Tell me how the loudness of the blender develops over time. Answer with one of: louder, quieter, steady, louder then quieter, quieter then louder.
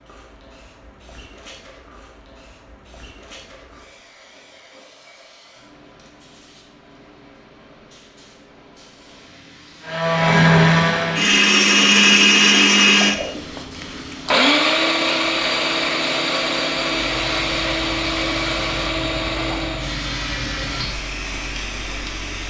quieter.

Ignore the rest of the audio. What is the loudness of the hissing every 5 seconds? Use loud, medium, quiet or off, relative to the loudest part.
quiet, quiet, medium, loud, loud.